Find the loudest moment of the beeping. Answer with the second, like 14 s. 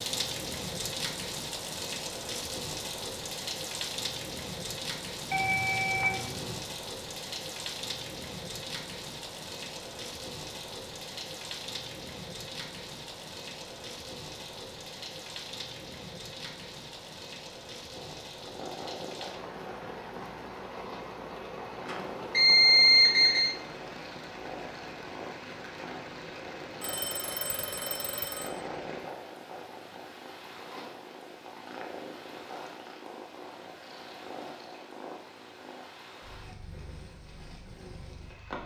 23 s.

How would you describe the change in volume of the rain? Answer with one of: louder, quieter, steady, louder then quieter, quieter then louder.
quieter.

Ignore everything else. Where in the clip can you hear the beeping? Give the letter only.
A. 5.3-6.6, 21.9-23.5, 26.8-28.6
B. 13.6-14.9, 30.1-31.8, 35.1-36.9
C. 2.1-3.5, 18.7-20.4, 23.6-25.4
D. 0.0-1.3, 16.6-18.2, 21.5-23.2
A.